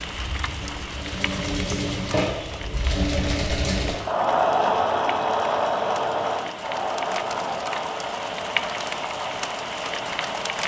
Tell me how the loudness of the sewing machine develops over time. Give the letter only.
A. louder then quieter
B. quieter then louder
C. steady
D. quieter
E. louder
A.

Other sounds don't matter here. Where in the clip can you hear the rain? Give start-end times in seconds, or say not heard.
0.0-10.6.